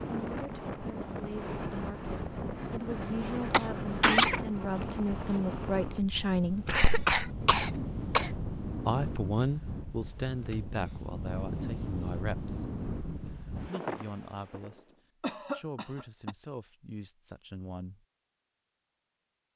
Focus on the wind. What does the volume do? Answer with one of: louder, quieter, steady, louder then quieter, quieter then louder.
steady.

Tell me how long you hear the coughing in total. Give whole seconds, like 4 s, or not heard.
4 s.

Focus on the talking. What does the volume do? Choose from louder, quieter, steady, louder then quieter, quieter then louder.
louder then quieter.